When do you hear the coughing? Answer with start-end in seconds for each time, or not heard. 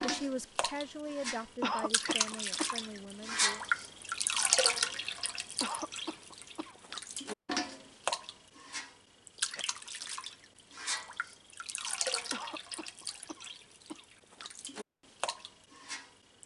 1.6-2.8, 5.6-6.8, 12.3-14.1.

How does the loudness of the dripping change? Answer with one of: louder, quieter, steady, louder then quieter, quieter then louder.
quieter.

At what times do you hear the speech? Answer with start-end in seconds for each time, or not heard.
0.0-3.6.